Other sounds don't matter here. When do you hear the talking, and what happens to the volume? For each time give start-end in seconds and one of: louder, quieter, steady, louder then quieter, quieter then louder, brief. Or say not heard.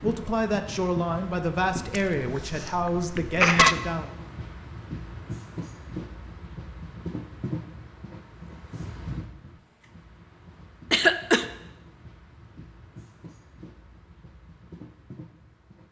0.0-4.1 steady.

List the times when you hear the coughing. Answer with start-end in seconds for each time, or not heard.
1.9-3.8, 10.9-11.4.